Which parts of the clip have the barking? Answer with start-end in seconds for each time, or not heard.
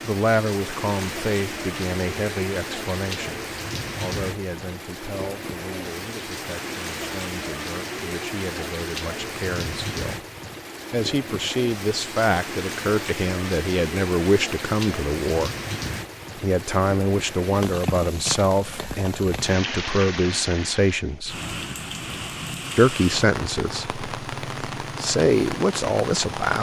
not heard.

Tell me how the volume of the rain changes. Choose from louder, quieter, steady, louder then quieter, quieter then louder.
steady.